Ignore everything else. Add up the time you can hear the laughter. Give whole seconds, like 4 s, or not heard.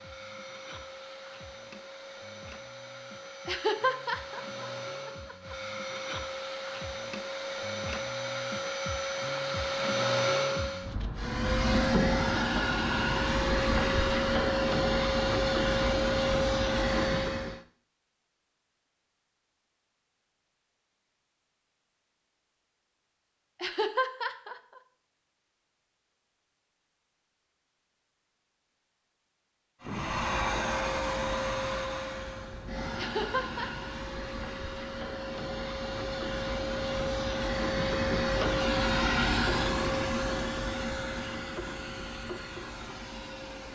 4 s.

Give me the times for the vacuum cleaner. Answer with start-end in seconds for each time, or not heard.
0.0-17.6, 29.8-43.6.